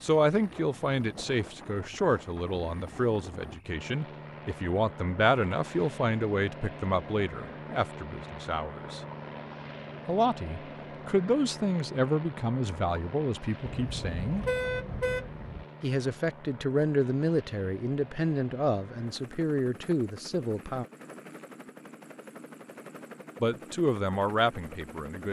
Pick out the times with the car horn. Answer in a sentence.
You can hear the car horn from 13.7 to 15.7 s.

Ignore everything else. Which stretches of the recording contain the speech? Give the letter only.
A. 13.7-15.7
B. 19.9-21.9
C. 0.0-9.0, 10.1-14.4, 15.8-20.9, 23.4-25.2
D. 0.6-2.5
C.